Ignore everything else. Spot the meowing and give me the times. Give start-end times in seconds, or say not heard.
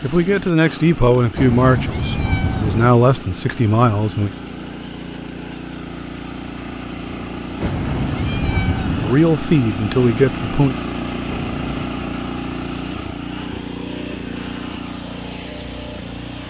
1.4-2.9, 7.6-9.2, 11.2-11.9.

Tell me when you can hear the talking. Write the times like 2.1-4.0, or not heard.
0.0-4.3, 9.0-10.8.